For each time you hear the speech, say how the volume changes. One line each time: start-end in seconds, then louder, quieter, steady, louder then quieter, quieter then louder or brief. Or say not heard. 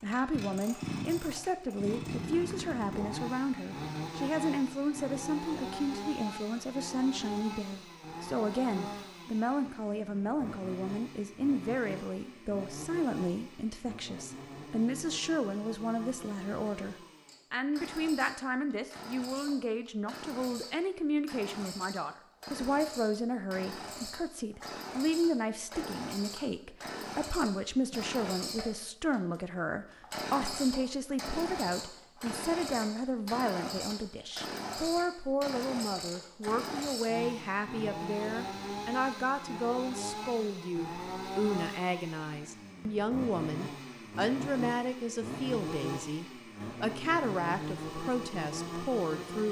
0.0-49.4 steady.